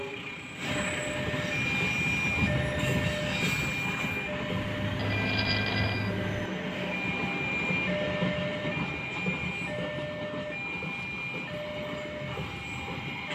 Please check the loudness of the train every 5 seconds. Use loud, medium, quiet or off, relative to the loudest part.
loud, loud, medium.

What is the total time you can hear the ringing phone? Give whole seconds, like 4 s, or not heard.
2 s.